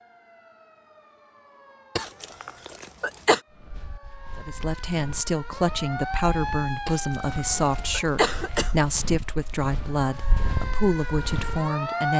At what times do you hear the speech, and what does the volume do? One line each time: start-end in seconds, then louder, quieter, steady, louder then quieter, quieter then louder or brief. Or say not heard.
4.3-12.1 steady.